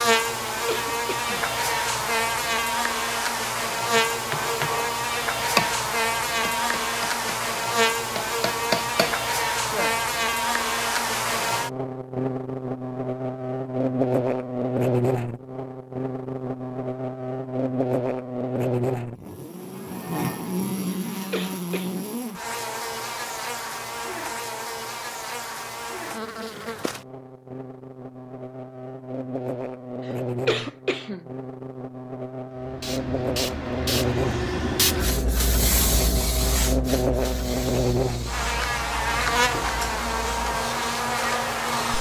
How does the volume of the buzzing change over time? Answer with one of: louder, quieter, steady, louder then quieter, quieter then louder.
quieter then louder.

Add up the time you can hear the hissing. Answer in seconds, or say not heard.
9 s.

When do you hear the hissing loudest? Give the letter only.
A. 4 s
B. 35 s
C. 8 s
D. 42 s
B.